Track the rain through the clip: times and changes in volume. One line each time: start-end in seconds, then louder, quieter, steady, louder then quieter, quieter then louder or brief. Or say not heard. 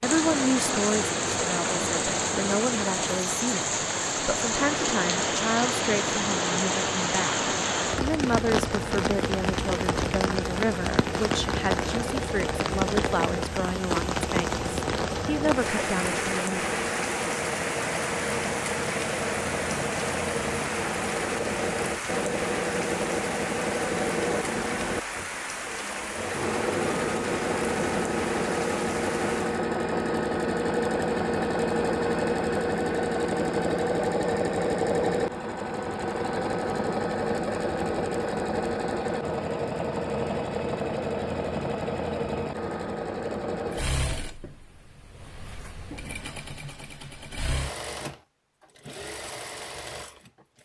0.0-29.6 quieter.